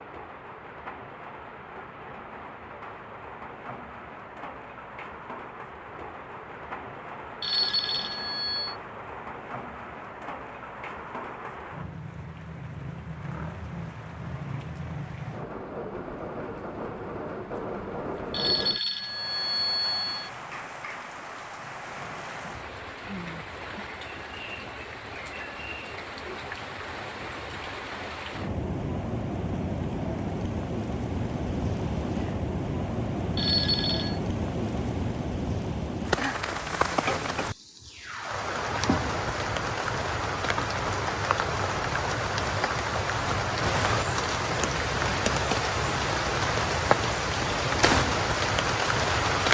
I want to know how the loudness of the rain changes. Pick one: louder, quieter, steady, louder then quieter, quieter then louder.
louder.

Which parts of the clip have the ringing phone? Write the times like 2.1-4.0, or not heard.
7.4-8.8, 18.3-20.3, 33.4-34.2.